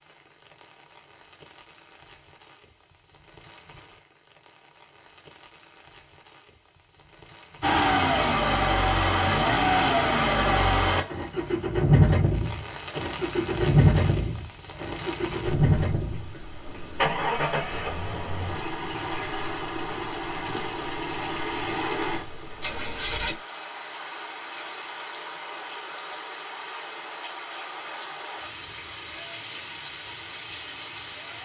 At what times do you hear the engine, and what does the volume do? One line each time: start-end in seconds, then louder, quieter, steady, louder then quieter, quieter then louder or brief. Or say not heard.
7.6-23.4 quieter.